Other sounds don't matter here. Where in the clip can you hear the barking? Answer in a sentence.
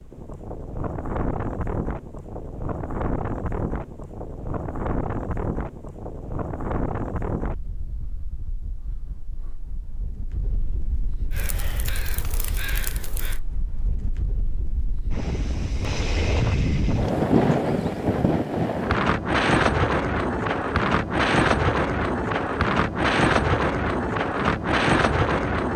The barking can't be heard in this clip.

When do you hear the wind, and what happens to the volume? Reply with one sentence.
You can hear the wind from 0.0 to 25.7 s, getting quieter then louder.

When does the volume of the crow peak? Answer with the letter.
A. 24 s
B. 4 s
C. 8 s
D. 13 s
D.